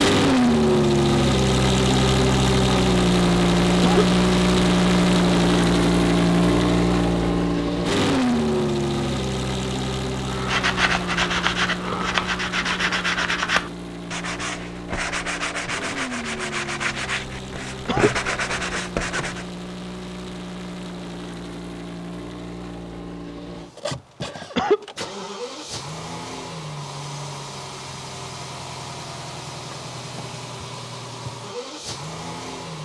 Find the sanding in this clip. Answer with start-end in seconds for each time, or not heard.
10.2-19.5.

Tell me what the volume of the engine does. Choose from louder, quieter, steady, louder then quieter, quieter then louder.
quieter.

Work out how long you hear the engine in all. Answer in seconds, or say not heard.
33 s.